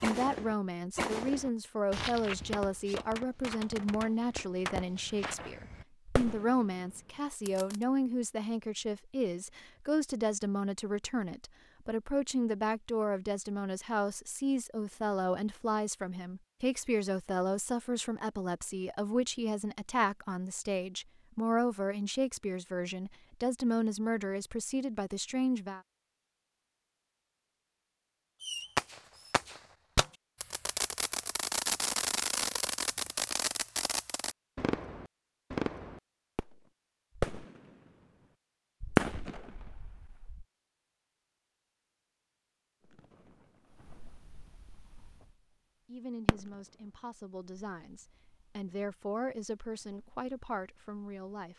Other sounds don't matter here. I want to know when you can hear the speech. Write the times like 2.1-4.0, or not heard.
0.0-25.8, 45.9-51.5.